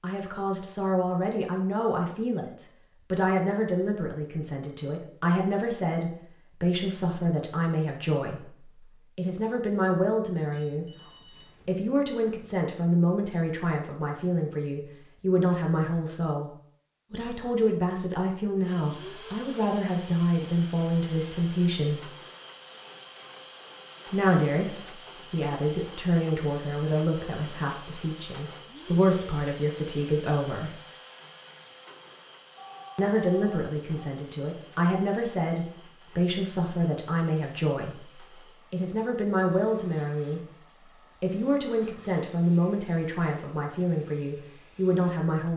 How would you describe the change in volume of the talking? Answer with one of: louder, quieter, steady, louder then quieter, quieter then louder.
steady.